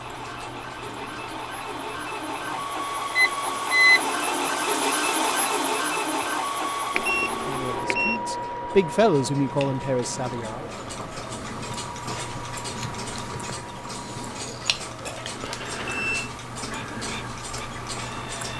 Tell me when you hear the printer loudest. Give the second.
5 s.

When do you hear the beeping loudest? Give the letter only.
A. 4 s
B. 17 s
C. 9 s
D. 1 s
A.